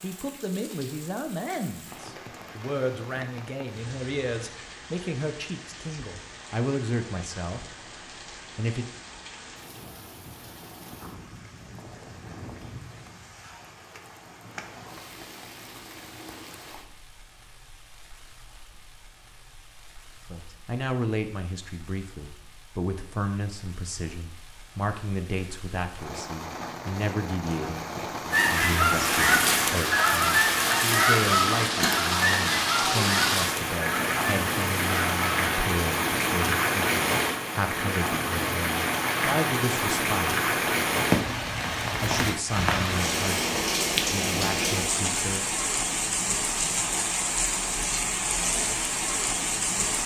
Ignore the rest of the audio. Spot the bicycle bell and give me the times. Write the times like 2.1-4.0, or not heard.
not heard.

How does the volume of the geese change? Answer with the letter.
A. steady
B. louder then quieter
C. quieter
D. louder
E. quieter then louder
C.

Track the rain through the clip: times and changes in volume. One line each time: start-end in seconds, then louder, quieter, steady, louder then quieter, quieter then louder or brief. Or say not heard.
0.0-50.0 louder.